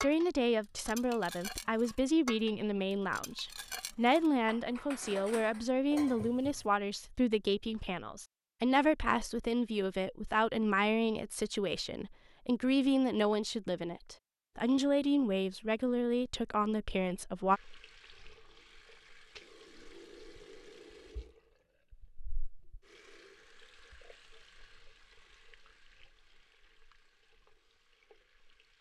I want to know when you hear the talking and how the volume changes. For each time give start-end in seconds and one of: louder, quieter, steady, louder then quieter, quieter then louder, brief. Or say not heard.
0.0-17.6 steady.